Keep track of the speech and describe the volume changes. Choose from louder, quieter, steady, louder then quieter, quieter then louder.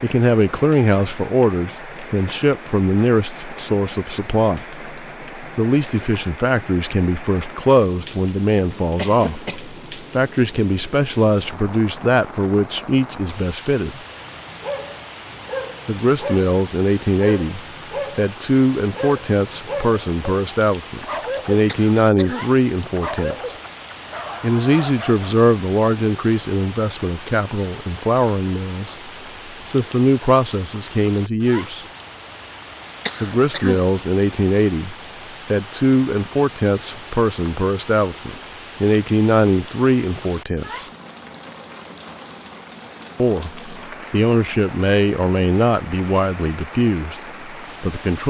steady.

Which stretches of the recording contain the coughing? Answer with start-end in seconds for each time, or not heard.
8.9-9.6, 21.6-22.4, 33.0-33.8.